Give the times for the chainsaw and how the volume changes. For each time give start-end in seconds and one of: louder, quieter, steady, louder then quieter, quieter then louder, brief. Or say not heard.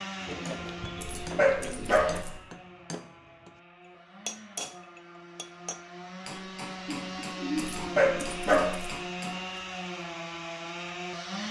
0.0-11.4 quieter then louder.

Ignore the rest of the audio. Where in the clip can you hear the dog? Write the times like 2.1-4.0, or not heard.
1.0-2.4, 7.5-8.9.